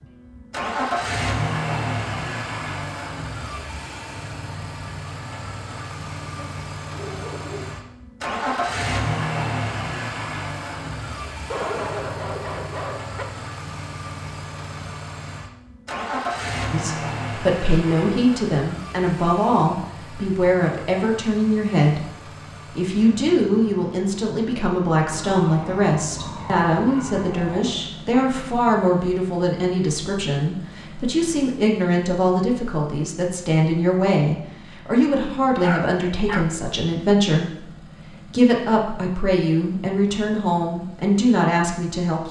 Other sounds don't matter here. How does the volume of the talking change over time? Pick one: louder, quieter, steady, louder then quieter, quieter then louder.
steady.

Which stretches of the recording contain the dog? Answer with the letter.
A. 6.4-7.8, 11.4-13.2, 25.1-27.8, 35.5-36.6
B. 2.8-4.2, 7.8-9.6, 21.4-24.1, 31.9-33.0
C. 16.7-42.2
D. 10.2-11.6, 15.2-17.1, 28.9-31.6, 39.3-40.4
A.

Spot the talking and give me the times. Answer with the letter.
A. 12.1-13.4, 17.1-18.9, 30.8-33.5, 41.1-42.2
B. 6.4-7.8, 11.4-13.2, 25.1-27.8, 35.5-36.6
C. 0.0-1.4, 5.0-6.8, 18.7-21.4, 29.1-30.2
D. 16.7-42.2
D.